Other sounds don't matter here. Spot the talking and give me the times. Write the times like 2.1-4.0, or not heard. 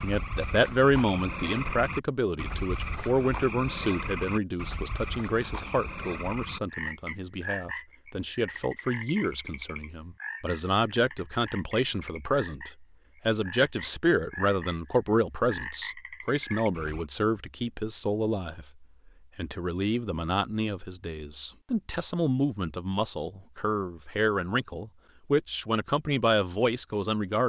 0.0-27.4.